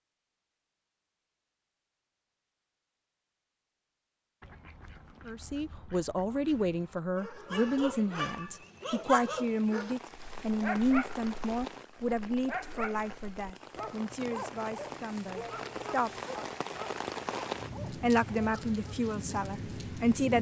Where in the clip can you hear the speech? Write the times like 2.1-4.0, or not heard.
5.2-16.1, 17.9-20.3.